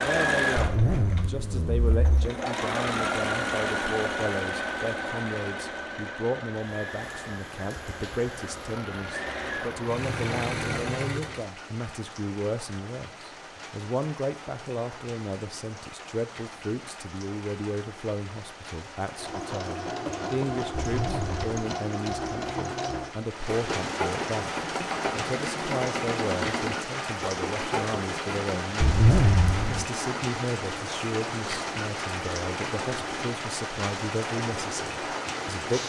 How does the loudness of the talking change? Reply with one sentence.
The volume of the talking stays about the same.